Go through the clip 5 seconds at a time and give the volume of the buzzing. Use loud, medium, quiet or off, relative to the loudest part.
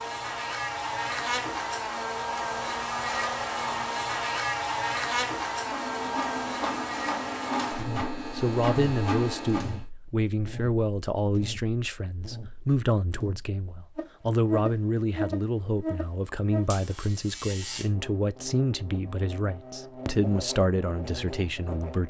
loud, loud, medium, medium, medium.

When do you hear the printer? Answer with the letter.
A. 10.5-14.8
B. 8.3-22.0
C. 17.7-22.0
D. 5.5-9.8
D.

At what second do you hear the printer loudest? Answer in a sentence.
The loudest moment of the printer is at 9 seconds.